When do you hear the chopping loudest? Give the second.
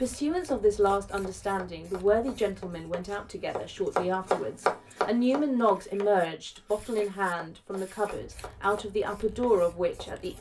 5 s.